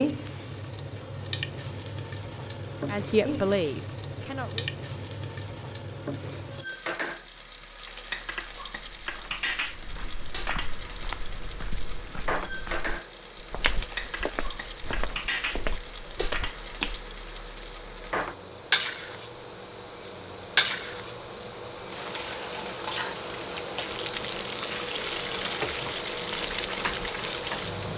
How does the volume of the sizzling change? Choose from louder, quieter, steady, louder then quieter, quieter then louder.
steady.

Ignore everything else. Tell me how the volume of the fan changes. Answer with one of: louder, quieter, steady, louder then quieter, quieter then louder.
louder.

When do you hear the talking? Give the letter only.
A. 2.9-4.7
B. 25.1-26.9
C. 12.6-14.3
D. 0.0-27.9
A.